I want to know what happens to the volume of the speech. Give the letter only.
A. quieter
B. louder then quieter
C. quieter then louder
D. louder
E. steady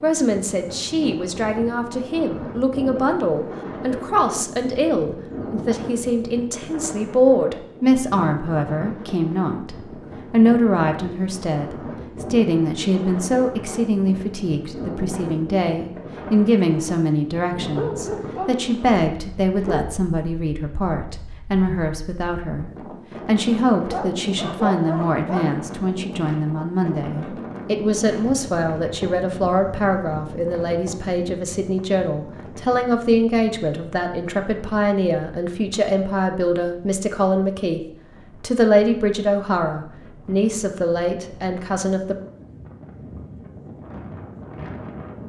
E.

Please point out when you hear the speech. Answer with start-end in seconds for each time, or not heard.
0.0-37.8, 38.4-42.1.